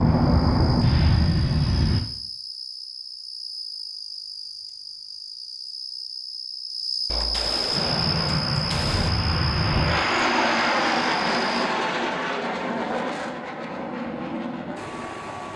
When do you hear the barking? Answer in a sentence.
The barking can't be heard in this clip.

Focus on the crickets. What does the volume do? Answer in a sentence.
The loudness of the crickets goes up.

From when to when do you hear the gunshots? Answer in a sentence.
The gunshots can be heard from 7.0 to 9.1 s.